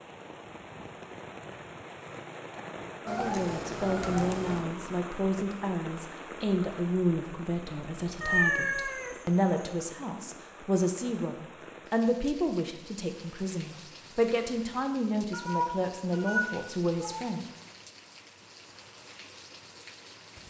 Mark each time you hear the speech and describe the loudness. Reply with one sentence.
You can hear the speech from 3.0 to 17.5 s, at a steady volume.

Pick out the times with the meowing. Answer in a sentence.
The meowing can be heard from 3.0 to 4.7 s, from 8.2 to 9.6 s and from 15.3 to 17.2 s.